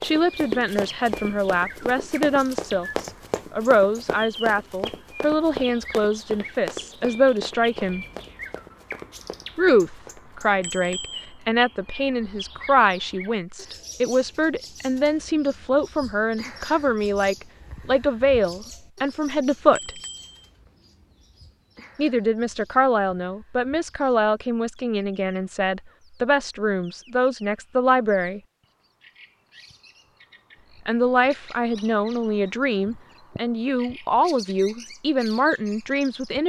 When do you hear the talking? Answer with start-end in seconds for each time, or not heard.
0.0-8.1, 9.6-20.0, 21.9-28.4, 30.9-36.4.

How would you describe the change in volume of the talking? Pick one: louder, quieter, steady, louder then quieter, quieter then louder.
steady.